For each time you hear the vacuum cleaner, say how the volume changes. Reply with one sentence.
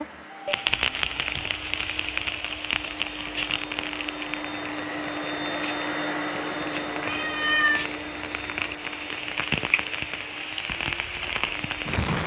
You can hear the vacuum cleaner from 0.0 to 12.0 s, getting louder then quieter.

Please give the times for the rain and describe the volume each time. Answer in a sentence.
You can hear the rain from 0.0 to 12.2 s, getting quieter then louder.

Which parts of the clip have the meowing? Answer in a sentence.
You can hear the meowing from 7.0 to 7.8 s.